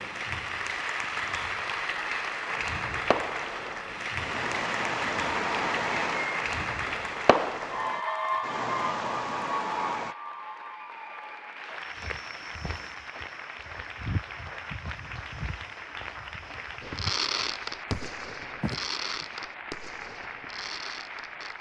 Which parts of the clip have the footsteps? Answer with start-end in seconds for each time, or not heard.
11.8-19.2.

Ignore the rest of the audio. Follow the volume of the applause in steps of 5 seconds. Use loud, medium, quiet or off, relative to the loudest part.
loud, loud, medium, medium, medium.